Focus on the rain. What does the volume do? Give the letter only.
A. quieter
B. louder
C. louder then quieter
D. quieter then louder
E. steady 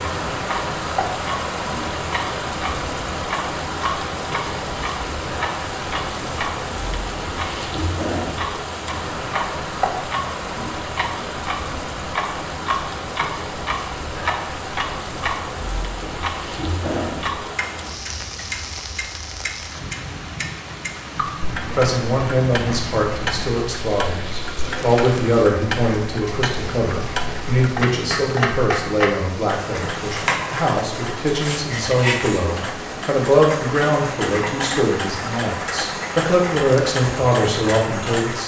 A.